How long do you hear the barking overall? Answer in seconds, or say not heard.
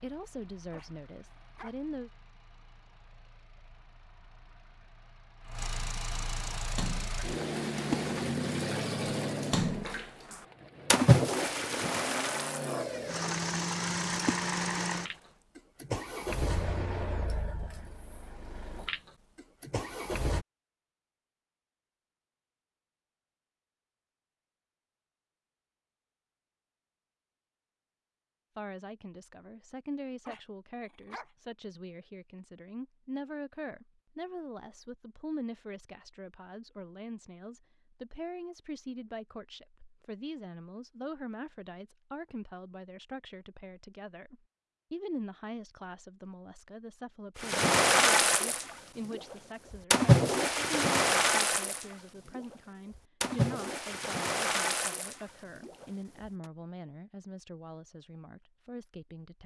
2 s.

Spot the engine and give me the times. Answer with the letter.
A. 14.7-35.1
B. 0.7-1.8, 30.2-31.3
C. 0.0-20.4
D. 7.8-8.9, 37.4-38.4
C.